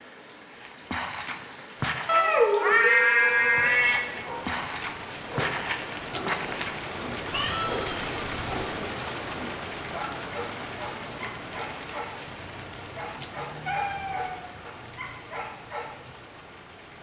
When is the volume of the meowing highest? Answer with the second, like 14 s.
3 s.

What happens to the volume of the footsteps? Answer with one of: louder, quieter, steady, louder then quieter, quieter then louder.
quieter then louder.